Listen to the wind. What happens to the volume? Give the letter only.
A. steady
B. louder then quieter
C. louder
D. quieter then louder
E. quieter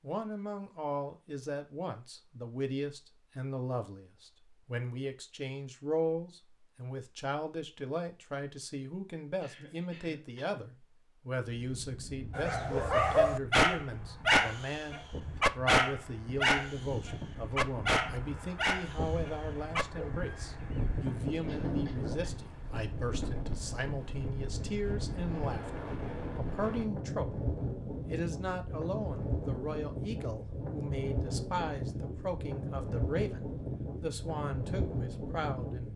C.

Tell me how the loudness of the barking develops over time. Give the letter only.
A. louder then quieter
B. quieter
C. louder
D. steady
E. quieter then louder
B.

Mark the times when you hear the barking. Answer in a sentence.
You can hear the barking from 12.3 to 21.0 s.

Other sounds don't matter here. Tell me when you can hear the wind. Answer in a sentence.
The wind can be heard from 11.6 to 35.9 s.